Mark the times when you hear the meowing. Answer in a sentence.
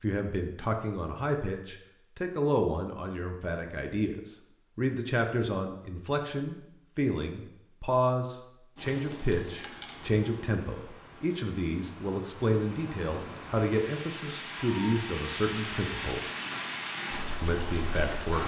You can't hear the meowing here.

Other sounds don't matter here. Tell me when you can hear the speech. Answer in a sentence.
You can hear the speech from 0.0 to 16.2 s and from 17.4 to 18.4 s.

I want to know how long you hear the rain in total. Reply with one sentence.
The rain can be heard for 10 seconds in total.